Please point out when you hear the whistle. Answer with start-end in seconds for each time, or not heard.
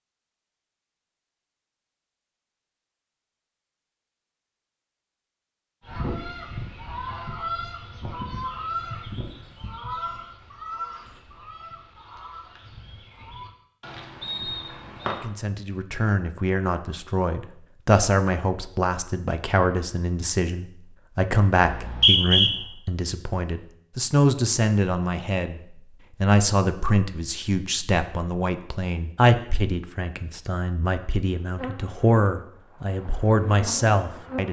14.2-15.1, 21.6-22.5.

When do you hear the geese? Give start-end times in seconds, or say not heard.
5.8-15.3.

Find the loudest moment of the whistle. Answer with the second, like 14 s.
22 s.